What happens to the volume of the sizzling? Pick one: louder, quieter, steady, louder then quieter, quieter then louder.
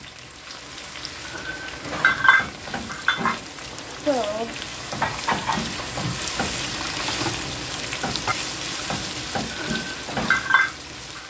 louder.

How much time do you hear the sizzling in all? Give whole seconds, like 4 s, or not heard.
11 s.